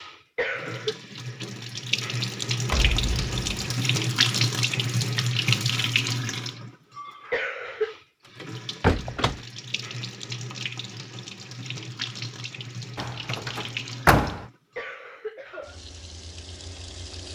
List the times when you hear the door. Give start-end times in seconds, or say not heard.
2.6-3.5, 8.4-9.4, 12.9-14.4.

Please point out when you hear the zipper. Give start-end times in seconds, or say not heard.
not heard.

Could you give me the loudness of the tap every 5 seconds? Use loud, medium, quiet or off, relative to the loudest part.
loud, loud, medium, quiet.